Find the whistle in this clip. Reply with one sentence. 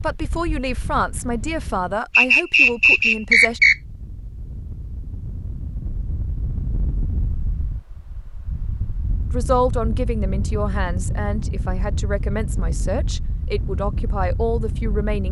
The whistle can be heard from 2.1 to 3.8 s.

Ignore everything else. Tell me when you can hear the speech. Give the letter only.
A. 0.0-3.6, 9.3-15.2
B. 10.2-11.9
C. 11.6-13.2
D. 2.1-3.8
A.